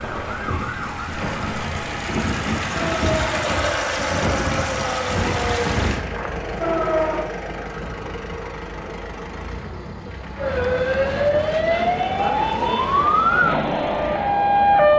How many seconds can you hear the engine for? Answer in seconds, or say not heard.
15 s.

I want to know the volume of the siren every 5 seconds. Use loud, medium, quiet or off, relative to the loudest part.
medium, medium, loud.